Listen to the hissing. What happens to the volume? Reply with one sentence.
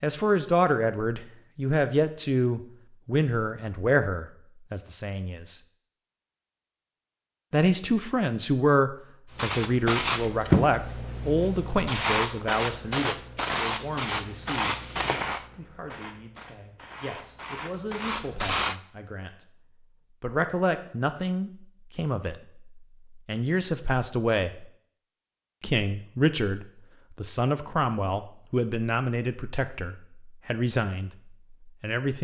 The loudness of the hissing goes down.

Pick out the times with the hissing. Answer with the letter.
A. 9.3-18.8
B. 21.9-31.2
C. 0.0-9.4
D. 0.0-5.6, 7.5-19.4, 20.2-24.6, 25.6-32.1
A.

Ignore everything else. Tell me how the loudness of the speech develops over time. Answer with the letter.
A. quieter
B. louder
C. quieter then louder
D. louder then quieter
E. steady
C.